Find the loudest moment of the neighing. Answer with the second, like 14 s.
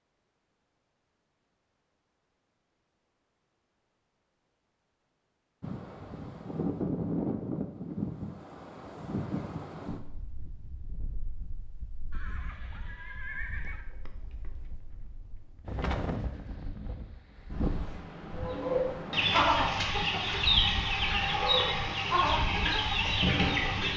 13 s.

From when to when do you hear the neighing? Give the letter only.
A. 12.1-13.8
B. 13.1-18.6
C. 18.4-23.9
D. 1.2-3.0
A.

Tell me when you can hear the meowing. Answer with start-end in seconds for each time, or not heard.
not heard.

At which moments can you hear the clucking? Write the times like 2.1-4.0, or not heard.
18.4-23.9.